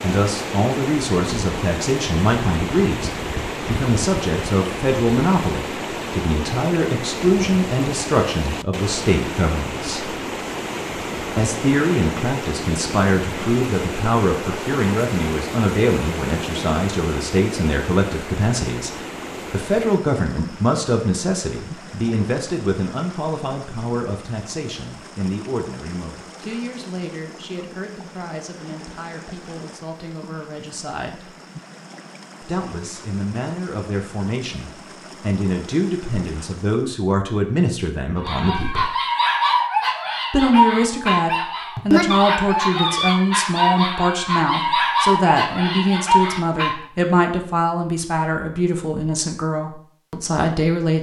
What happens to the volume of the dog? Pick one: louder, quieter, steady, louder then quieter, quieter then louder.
steady.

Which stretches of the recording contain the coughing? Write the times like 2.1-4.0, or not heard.
not heard.